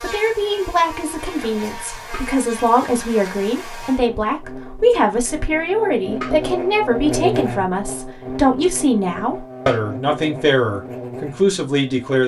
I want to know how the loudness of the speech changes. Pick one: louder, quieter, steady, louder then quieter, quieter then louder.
steady.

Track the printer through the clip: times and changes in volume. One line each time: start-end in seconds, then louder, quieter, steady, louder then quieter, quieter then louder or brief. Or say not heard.
not heard.